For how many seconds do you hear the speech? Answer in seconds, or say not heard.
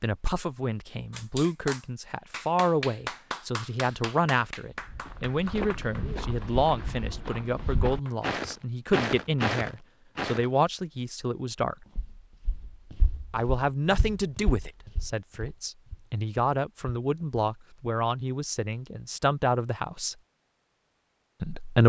19 s.